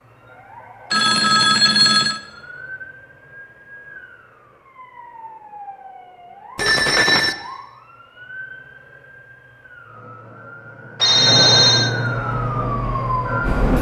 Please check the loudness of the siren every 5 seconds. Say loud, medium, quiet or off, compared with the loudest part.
quiet, quiet, loud.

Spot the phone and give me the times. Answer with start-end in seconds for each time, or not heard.
0.9-2.2, 6.5-7.3, 11.0-11.9.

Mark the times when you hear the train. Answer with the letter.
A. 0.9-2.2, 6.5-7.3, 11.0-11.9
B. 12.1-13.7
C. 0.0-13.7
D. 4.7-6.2
B.